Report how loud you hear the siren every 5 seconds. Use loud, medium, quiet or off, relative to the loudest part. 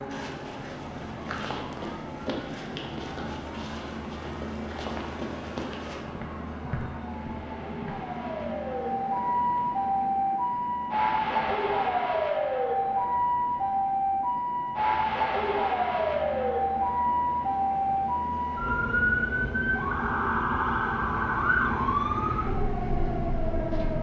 quiet, medium, loud, loud, loud.